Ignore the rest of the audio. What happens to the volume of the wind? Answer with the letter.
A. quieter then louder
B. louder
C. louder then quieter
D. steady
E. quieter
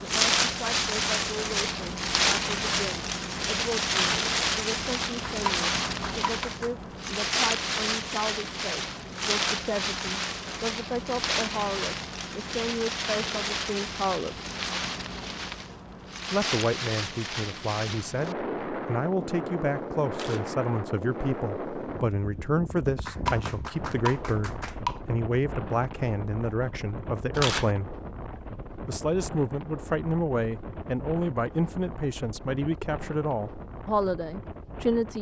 E.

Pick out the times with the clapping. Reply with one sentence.
The clapping can be heard from 5.2 to 6.7 s and from 23.1 to 25.0 s.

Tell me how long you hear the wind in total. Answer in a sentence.
You can hear the wind for 35 seconds altogether.